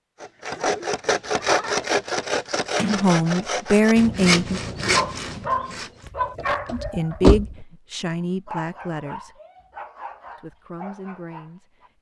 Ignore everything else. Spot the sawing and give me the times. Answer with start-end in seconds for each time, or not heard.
0.2-6.1.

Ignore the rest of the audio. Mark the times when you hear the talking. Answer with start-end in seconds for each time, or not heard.
2.9-4.6, 6.7-9.3, 10.3-11.9.